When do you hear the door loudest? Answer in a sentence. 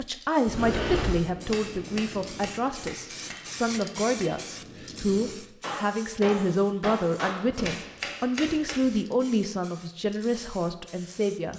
The loudest moment of the door is at 1 second.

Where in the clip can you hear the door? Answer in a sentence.
You can hear the door from 0.5 to 1.2 s and from 7.5 to 8.9 s.